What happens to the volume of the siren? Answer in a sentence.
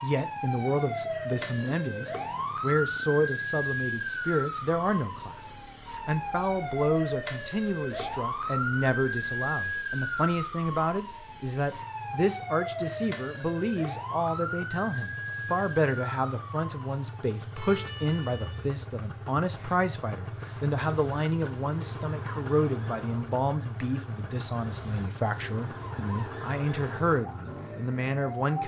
The volume of the siren goes down.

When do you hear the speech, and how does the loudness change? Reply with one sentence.
You can hear the speech from 0.0 to 28.6 s, at a steady volume.